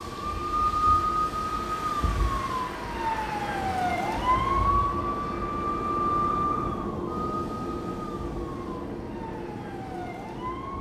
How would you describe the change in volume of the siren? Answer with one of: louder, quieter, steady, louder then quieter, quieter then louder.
quieter.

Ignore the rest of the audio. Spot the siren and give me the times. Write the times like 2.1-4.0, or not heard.
0.0-10.7.